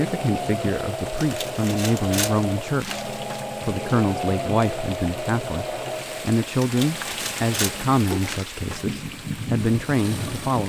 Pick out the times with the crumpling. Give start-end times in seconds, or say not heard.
1.1-3.5, 6.5-8.9.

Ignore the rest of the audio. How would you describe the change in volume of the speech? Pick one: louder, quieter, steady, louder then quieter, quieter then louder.
steady.